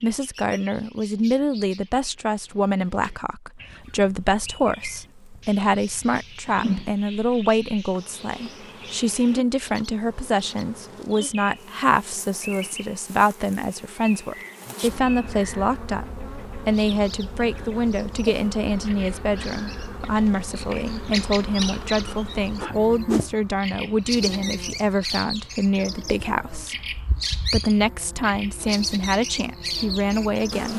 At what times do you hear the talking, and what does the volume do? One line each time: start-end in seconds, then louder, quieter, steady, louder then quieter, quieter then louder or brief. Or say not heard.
0.0-30.7 steady.